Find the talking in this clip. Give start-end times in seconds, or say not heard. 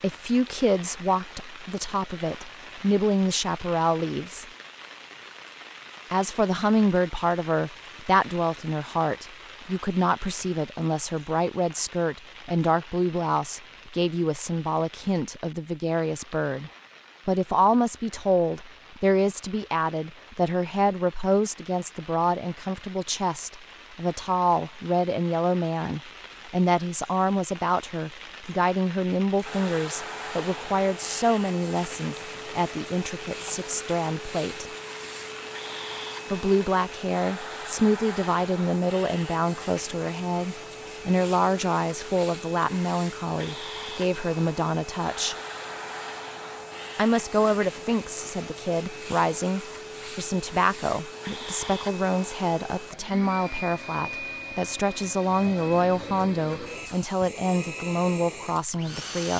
0.0-4.5, 6.1-34.7, 36.3-45.4, 47.0-59.3.